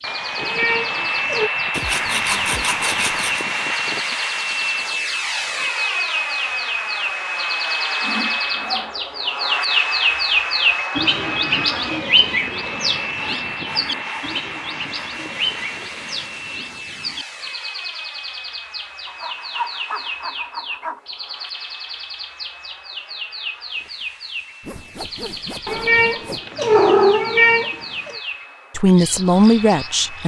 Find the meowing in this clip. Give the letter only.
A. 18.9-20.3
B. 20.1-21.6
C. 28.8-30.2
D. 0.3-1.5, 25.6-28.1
D.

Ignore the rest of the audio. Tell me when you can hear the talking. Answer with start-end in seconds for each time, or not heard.
28.8-30.2.